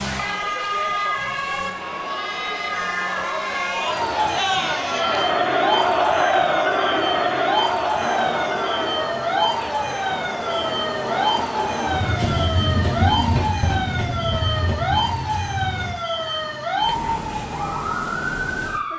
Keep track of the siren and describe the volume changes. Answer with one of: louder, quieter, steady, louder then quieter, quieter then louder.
steady.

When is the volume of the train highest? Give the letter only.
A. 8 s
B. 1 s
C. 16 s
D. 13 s
D.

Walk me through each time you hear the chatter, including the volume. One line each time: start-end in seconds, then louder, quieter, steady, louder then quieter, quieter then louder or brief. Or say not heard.
0.0-12.2 louder then quieter.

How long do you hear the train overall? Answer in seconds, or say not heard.
8 s.